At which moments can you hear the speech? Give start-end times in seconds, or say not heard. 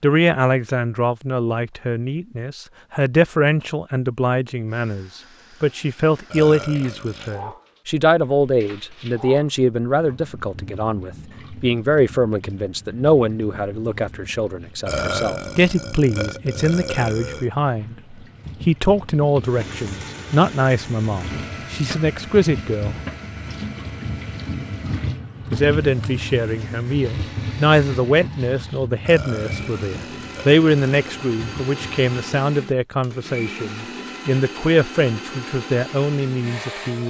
0.0-22.9, 25.5-37.0.